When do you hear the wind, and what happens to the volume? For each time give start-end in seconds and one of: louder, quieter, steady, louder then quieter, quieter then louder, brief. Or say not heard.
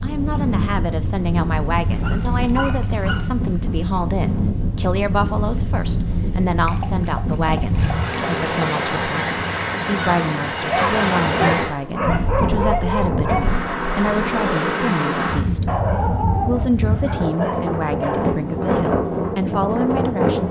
0.0-20.4 steady.